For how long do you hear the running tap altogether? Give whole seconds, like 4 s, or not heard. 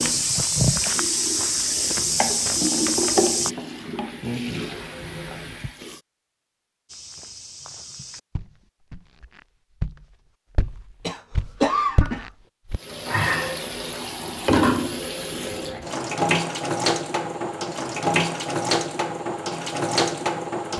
14 s.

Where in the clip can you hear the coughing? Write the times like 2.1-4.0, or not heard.
11.1-12.2.